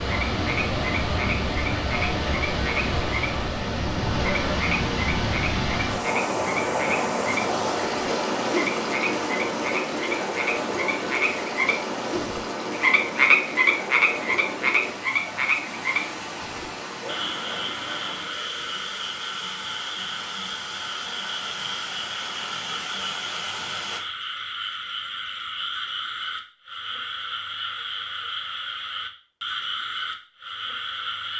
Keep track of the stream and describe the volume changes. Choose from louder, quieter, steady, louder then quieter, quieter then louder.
quieter.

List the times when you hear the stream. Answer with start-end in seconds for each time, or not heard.
0.0-24.0.